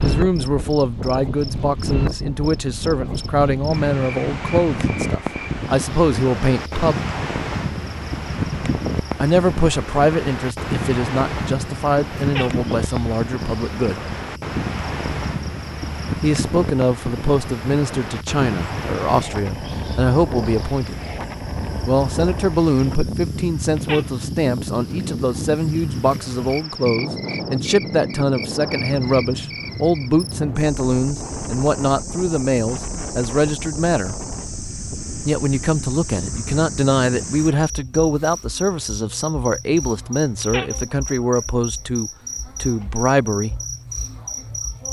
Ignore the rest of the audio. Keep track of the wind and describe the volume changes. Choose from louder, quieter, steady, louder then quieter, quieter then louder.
quieter.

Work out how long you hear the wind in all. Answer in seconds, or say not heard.
38 s.